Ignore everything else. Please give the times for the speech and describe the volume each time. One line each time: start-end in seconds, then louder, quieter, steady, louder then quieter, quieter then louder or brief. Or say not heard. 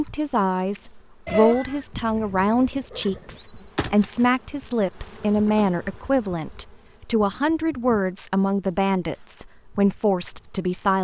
0.0-11.0 steady.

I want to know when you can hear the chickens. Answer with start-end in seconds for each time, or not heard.
not heard.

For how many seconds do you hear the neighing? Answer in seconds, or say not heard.
2 s.